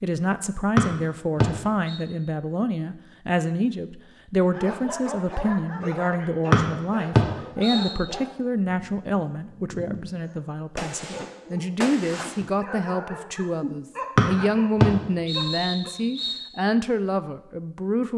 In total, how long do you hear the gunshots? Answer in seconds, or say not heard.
2 s.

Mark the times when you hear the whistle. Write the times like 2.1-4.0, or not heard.
0.8-2.0, 6.5-8.0, 14.2-16.4.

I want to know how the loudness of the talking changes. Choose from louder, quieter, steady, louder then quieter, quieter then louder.
steady.